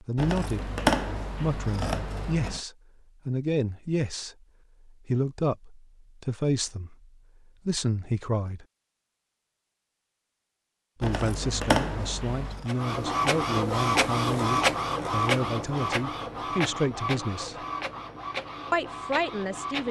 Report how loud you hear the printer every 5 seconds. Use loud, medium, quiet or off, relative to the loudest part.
off, off, loud, medium.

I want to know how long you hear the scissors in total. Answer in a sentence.
You can hear the scissors for 4 seconds altogether.